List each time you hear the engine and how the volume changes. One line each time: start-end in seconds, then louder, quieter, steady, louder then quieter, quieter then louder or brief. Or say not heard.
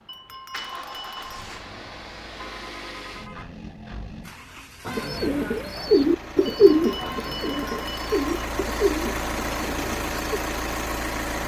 0.0-11.4 louder.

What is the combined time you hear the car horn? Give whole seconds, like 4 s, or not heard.
2 s.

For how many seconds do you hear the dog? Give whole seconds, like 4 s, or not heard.
not heard.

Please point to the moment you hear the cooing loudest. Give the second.
7 s.